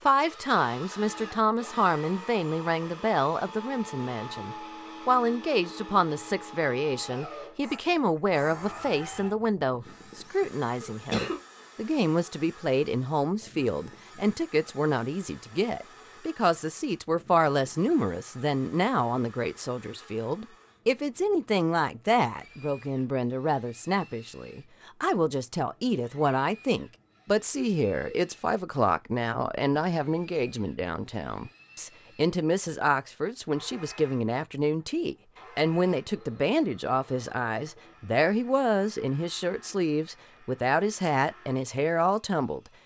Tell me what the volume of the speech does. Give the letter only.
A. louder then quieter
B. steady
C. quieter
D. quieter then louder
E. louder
B.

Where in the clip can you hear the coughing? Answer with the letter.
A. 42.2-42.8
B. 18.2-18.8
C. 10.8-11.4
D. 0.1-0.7
C.